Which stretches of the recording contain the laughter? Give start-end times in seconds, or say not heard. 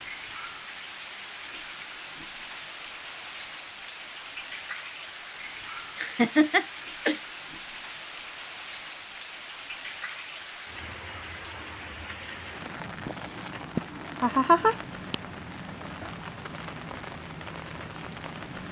6.0-7.2, 13.8-15.2.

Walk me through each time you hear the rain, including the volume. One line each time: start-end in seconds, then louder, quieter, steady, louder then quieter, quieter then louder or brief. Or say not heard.
0.0-18.6 steady.